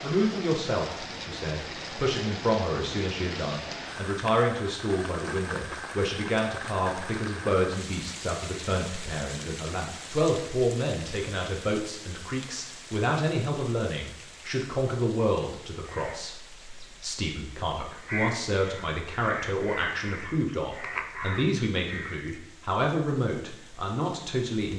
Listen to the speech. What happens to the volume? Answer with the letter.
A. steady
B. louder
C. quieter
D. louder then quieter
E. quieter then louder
A.